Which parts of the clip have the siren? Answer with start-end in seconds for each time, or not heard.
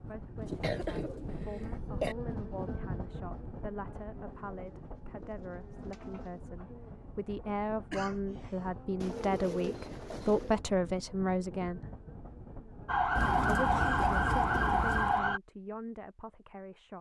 12.8-15.4.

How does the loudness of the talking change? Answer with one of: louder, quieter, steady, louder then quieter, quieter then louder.
louder then quieter.